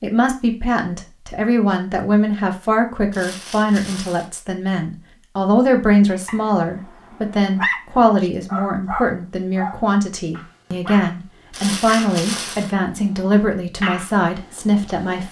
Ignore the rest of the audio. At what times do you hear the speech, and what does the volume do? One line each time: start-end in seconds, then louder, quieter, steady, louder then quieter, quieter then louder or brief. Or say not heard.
0.0-15.2 steady.